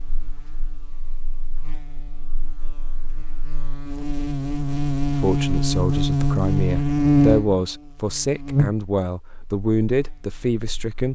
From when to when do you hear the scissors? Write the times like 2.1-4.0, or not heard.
not heard.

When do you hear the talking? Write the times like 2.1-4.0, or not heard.
5.1-11.1.